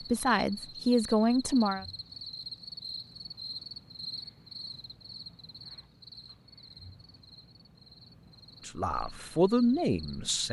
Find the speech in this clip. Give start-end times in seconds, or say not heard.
0.0-1.9, 8.7-10.4.